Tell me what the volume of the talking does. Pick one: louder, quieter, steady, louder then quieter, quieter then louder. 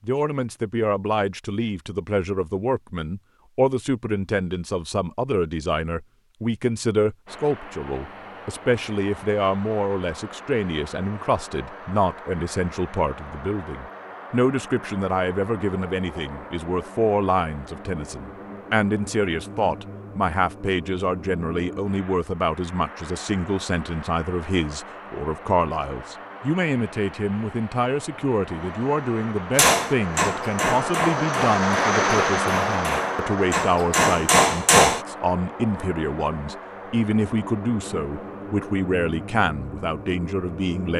steady.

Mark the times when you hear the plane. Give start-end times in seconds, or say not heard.
7.2-40.9.